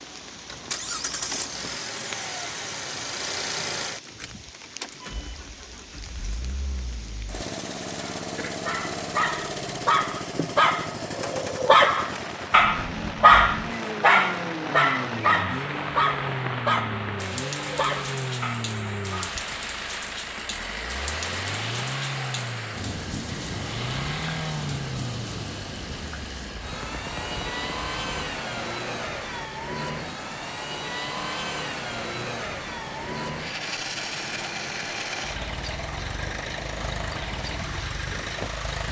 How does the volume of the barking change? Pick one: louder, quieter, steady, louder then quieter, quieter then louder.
louder then quieter.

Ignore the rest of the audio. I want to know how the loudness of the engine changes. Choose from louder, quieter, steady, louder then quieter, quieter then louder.
steady.